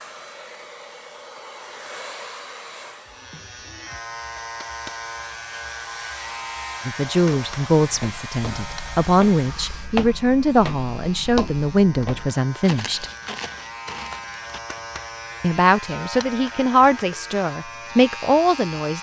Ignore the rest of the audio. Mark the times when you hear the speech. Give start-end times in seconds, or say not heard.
6.8-13.1, 15.4-18.9.